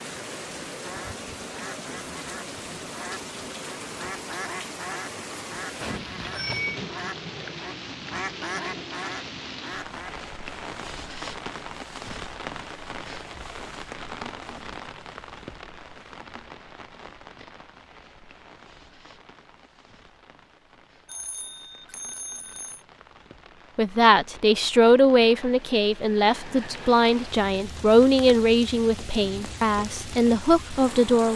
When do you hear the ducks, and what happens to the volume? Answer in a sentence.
You can hear the ducks from 0.8 to 10.2 s, getting louder.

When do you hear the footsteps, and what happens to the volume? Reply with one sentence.
You can't hear the footsteps here.